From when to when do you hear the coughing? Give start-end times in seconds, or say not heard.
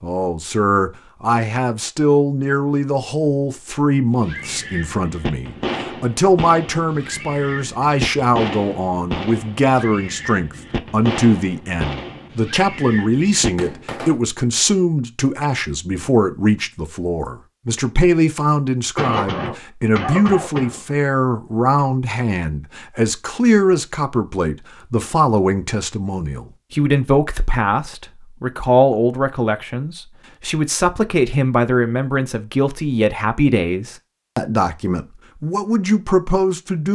18.9-20.8.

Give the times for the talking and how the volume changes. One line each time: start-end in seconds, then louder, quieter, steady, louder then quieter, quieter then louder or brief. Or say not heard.
0.0-36.9 steady.